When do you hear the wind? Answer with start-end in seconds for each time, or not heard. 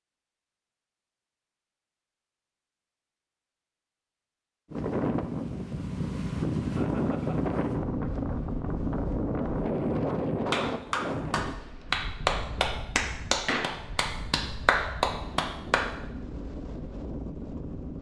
4.7-17.9.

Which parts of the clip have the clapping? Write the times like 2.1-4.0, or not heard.
10.5-15.8.